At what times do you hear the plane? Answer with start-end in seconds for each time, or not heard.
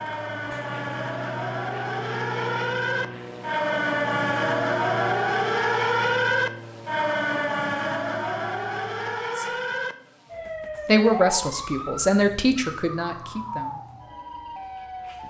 0.0-9.2.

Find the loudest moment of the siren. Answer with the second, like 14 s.
6 s.